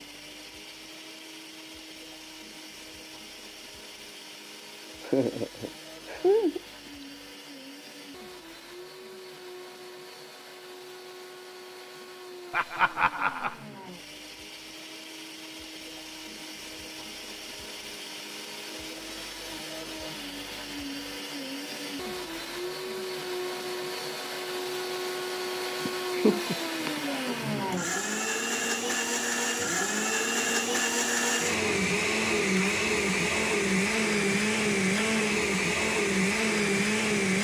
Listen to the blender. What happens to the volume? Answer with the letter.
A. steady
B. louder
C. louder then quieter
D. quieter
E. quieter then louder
B.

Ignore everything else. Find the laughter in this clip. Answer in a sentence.
You can hear the laughter from 5.0 to 6.6 s, from 12.5 to 13.6 s and from 25.9 to 26.9 s.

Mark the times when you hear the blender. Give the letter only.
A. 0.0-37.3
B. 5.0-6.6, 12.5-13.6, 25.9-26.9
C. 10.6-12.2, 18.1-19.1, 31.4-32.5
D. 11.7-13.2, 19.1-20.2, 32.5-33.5
A.